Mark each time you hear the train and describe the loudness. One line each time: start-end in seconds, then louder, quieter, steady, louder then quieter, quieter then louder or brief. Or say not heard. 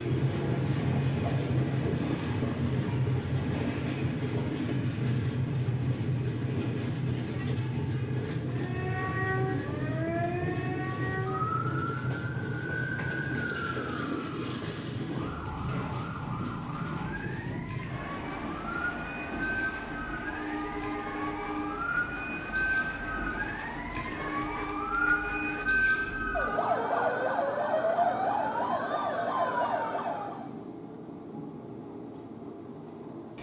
0.0-33.3 quieter.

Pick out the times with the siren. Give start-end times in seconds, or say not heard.
8.5-30.4.